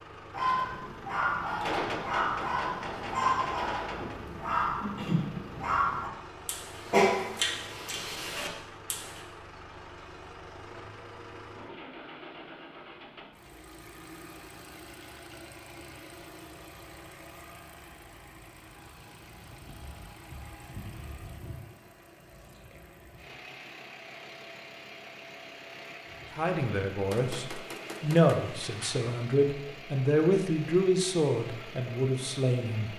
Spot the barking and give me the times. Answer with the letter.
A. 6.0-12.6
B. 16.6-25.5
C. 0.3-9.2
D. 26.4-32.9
C.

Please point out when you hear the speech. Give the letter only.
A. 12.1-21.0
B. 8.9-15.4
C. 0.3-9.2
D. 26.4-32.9
D.